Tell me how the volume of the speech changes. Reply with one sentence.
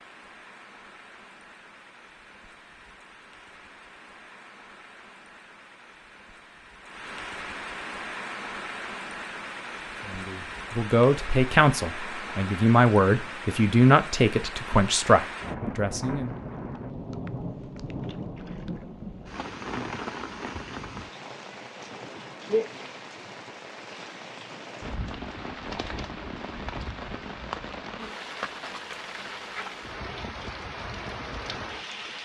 The loudness of the speech stays about the same.